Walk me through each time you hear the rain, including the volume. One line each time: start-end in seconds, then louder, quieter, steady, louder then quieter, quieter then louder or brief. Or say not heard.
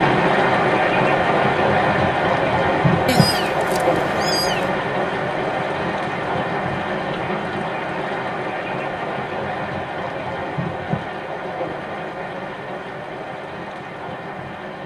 0.0-14.8 quieter.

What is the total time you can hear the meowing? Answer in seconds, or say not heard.
2 s.